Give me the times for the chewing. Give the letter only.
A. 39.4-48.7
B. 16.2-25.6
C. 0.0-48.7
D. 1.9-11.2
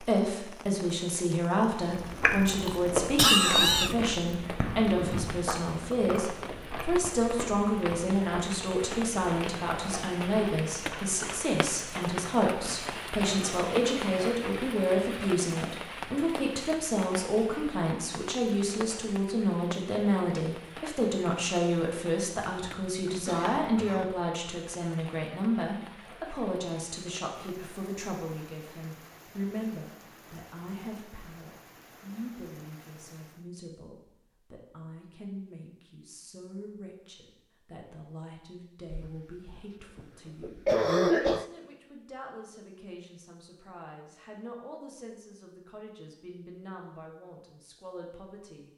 D.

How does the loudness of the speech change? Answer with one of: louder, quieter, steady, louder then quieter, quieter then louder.
quieter.